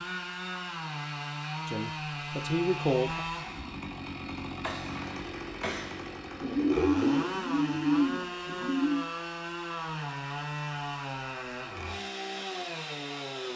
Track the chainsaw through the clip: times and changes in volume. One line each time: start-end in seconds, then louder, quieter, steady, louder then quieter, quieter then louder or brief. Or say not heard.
0.0-13.5 steady.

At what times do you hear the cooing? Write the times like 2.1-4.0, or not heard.
6.4-9.1.